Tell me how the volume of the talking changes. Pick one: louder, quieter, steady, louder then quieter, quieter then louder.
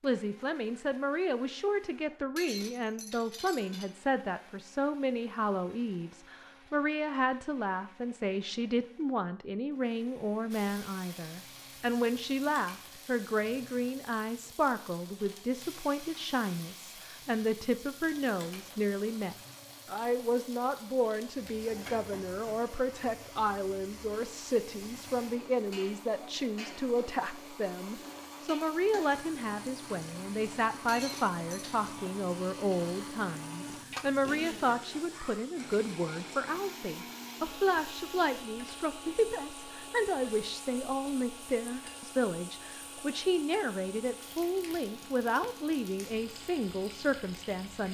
steady.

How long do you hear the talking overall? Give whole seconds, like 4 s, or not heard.
48 s.